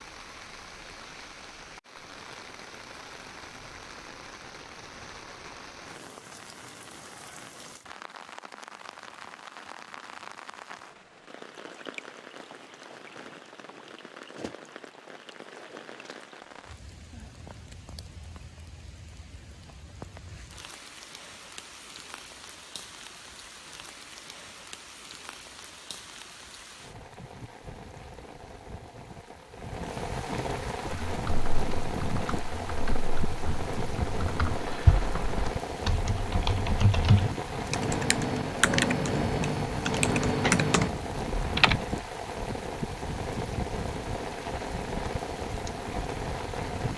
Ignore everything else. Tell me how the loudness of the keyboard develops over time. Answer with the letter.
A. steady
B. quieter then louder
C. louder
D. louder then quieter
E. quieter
C.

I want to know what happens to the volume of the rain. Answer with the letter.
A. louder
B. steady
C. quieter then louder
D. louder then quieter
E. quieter
A.